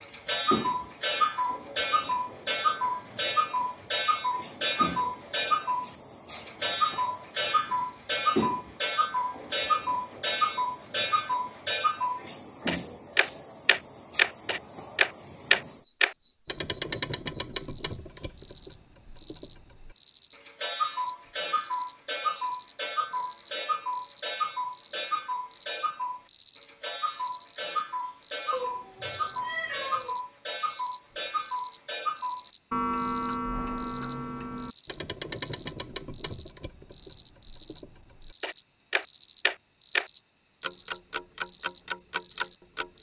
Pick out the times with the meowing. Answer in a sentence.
The meowing can be heard from 28.5 to 30.1 s.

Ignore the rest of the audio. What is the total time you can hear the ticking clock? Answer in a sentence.
You can hear the ticking clock for 43 seconds altogether.